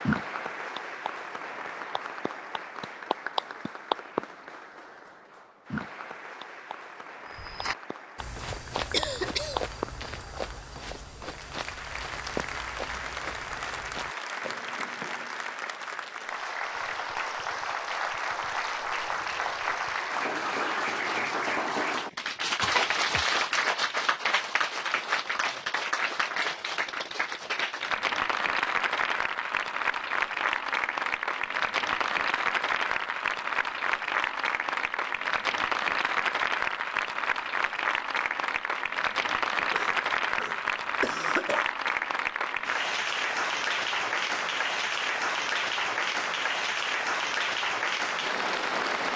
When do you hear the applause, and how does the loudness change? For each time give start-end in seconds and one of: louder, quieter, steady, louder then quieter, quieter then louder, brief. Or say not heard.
0.0-49.1 louder.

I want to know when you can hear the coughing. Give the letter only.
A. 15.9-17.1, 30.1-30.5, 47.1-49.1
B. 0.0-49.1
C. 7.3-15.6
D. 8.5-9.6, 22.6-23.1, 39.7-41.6
D.